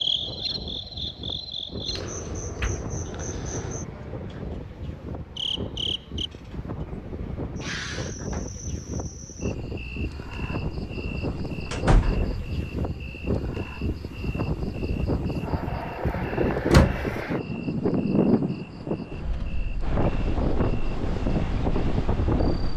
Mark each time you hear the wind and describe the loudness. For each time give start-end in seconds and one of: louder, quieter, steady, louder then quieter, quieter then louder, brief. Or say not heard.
0.0-22.7 louder.